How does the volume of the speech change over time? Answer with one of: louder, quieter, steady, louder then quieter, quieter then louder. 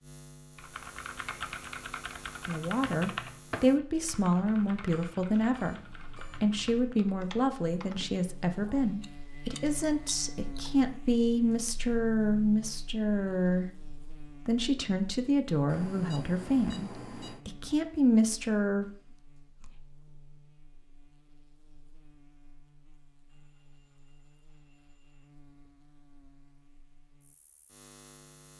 steady.